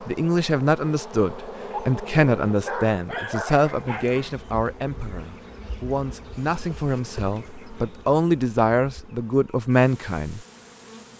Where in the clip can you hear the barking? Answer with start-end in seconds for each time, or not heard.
1.7-4.3.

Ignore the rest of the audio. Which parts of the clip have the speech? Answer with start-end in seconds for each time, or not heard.
0.1-10.4.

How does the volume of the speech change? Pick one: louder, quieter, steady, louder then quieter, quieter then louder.
quieter then louder.